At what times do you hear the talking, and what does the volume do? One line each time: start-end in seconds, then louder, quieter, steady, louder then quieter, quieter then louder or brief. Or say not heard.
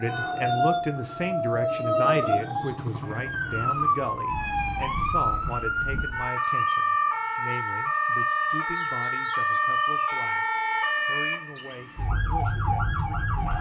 0.0-13.5 quieter.